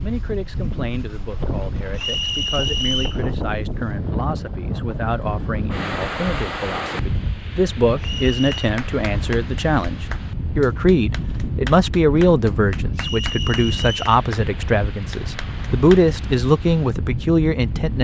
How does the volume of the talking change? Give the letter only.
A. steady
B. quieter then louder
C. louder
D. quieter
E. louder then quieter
C.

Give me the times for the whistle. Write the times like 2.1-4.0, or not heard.
1.9-3.2, 8.0-8.7, 12.9-14.2.